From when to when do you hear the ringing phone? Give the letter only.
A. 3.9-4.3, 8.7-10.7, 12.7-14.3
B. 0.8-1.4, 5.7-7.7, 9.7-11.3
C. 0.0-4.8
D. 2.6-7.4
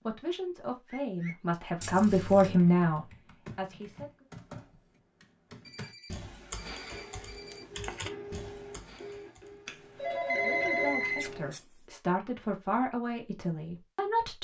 B.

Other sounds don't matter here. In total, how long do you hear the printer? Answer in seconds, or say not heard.
5 s.